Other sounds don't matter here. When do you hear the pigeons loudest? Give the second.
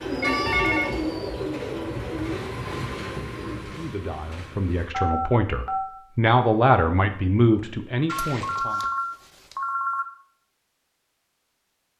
1 s.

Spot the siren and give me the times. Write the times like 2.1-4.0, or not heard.
not heard.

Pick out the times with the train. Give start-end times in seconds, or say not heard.
0.0-5.0.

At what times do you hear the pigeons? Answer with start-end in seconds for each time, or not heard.
0.0-3.5.